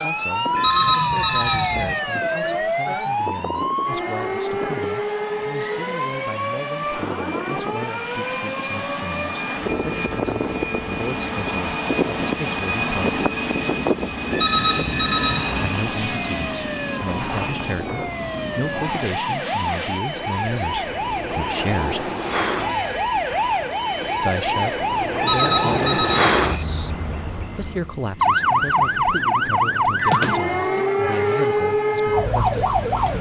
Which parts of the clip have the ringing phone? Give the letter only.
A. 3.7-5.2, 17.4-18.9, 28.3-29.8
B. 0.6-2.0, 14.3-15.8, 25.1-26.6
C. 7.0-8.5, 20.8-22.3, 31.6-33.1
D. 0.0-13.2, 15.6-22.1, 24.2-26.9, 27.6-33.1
B.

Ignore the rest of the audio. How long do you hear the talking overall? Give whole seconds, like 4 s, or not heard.
28 s.